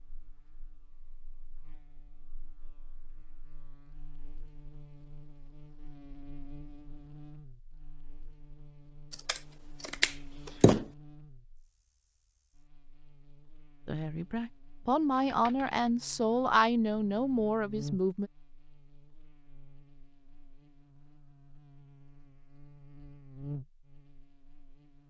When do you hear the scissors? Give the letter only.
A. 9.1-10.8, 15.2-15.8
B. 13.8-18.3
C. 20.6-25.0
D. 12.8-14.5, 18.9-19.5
A.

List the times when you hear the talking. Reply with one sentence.
You can hear the talking from 13.8 to 18.3 s.